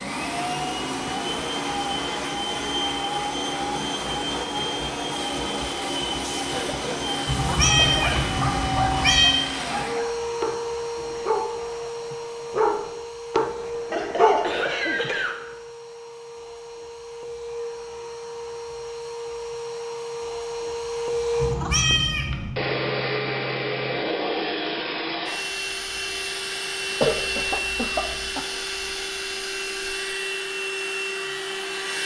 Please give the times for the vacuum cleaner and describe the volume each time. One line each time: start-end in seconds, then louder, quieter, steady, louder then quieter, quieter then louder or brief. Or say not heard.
0.0-32.0 quieter then louder.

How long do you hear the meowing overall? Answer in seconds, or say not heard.
3 s.